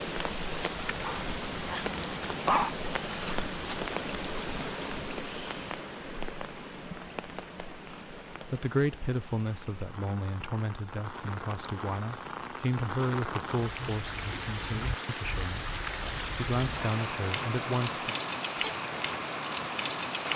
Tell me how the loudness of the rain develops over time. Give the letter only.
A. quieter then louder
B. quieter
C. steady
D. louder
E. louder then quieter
A.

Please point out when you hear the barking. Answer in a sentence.
You can hear the barking from 1.0 to 2.7 s.